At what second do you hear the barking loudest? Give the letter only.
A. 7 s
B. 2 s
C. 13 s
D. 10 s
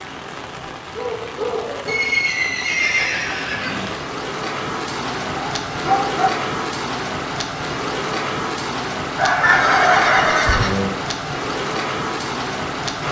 D.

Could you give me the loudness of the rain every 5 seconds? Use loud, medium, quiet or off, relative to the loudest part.
medium, loud, loud.